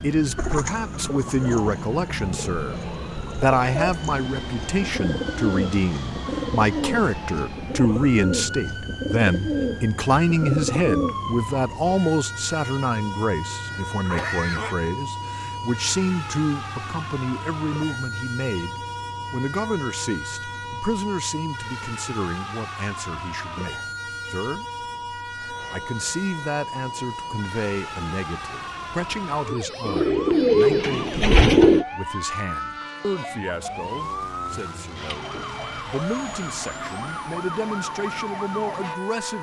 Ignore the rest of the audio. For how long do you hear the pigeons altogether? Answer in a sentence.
The pigeons can be heard for 13 seconds in total.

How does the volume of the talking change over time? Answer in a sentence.
The volume of the talking goes down.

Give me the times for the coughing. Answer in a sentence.
You can hear the coughing from 13.9 to 14.9 s.